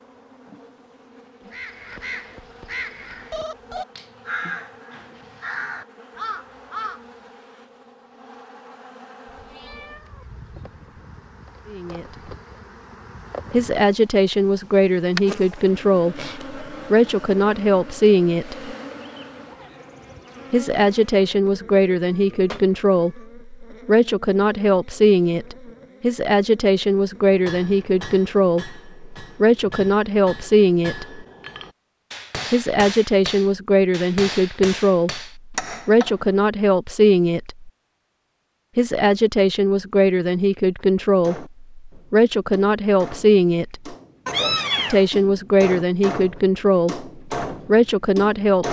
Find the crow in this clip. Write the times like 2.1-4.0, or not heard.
1.5-7.0.